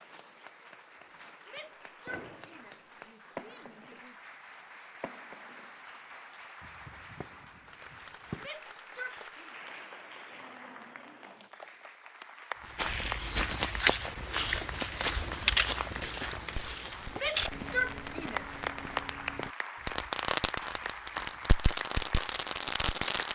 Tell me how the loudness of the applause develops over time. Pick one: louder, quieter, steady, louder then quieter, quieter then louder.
louder.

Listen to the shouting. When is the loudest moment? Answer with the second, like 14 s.
18 s.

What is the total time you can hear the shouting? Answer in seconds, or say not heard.
5 s.